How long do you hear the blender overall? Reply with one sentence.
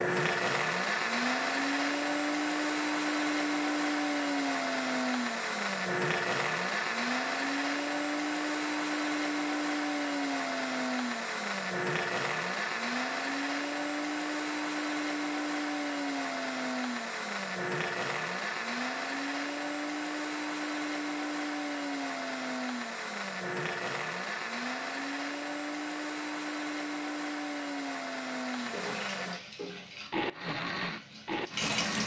You can hear the blender for 32 seconds altogether.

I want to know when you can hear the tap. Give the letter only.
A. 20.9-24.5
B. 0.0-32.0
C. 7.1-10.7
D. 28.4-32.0
D.